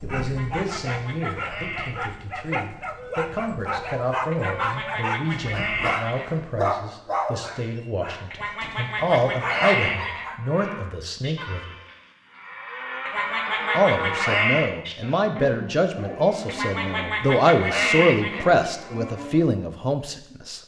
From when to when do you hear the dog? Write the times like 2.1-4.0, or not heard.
0.0-10.4.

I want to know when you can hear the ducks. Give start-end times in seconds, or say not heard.
0.2-2.1, 4.3-6.3, 8.3-10.2, 13.1-14.7, 16.4-18.4.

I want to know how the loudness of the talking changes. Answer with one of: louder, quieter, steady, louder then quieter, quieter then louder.
louder.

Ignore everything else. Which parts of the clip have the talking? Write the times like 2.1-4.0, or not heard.
0.0-11.8, 13.8-20.6.